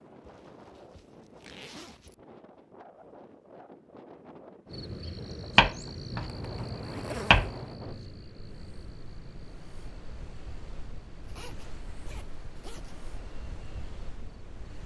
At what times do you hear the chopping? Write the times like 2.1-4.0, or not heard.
5.5-8.0.